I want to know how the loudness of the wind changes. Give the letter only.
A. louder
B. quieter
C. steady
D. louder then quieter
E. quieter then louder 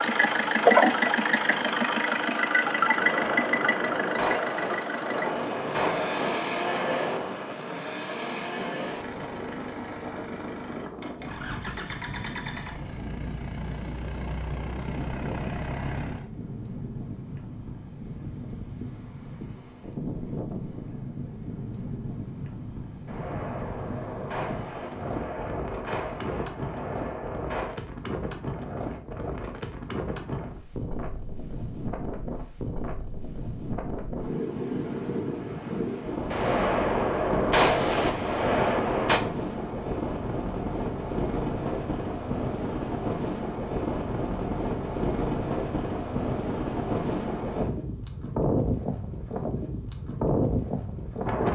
A.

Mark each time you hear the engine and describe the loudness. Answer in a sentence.
You can hear the engine from 0.0 to 16.3 s, getting quieter.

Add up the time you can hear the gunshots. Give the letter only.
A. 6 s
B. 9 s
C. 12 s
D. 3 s
C.